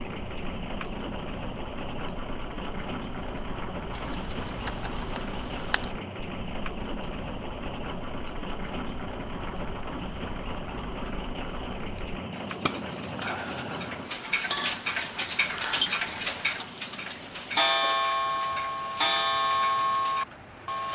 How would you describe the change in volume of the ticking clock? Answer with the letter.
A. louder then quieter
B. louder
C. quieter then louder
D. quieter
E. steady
B.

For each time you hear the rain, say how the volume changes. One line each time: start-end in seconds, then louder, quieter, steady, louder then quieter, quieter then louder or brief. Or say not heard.
0.0-20.8 quieter.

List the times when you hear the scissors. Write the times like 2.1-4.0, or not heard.
3.9-6.0.